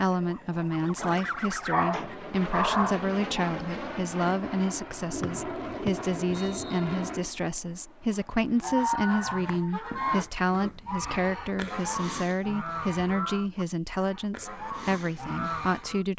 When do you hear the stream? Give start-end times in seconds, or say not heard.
not heard.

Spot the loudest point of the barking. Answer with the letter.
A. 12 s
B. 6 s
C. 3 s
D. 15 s
C.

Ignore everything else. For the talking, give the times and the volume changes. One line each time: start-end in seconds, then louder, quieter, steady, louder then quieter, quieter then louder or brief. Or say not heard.
0.0-16.1 steady.